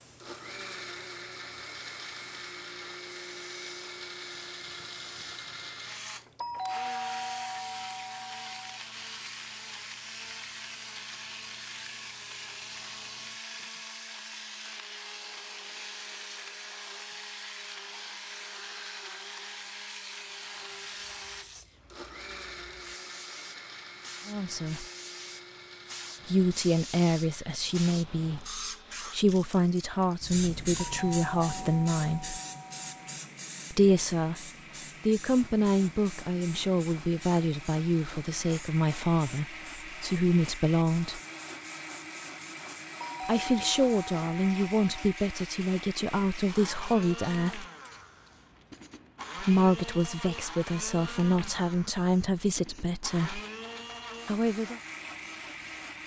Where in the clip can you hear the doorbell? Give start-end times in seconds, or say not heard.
6.4-8.8, 30.8-33.2, 43.0-45.1.